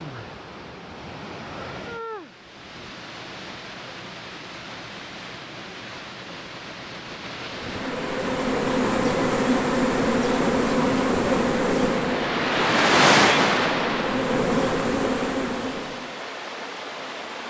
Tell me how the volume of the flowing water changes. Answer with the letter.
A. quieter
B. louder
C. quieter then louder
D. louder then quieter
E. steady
D.